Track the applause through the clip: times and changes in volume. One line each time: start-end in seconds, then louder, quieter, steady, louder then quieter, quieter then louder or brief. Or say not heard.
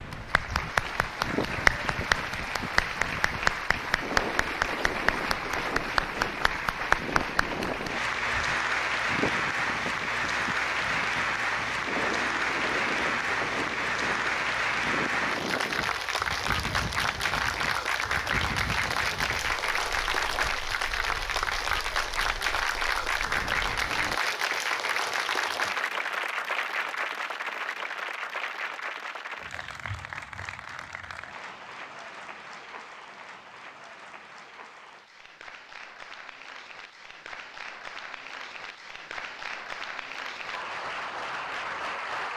0.0-42.3 quieter.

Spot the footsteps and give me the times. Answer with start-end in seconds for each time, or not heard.
not heard.